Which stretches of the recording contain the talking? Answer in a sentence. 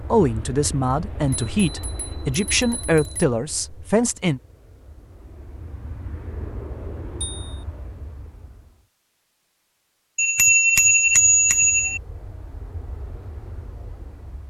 You can hear the talking from 0.0 to 4.4 s.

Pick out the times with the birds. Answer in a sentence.
The birds can't be heard in this clip.